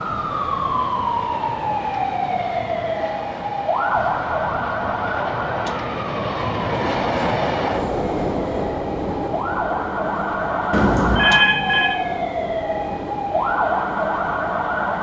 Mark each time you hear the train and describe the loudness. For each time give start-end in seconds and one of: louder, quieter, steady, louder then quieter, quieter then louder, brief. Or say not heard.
0.0-14.9 louder then quieter.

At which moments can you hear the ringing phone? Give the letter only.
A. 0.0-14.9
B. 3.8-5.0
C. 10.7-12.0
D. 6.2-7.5
C.